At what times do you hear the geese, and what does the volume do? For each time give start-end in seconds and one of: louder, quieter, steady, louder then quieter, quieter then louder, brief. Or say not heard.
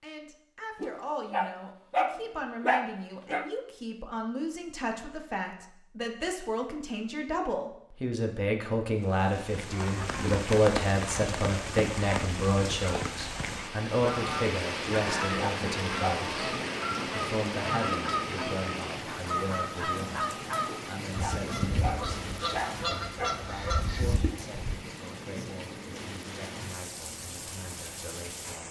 14.0-24.8 steady.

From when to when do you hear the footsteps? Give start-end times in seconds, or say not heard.
not heard.